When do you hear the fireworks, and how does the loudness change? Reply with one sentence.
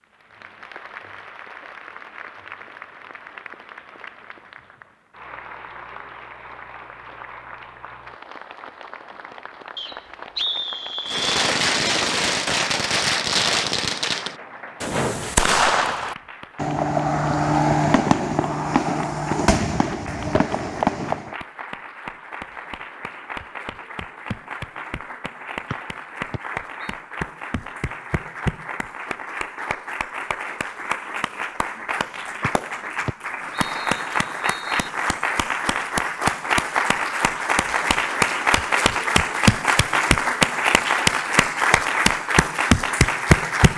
You can hear the fireworks from 11.1 to 21.4 s, at a steady volume.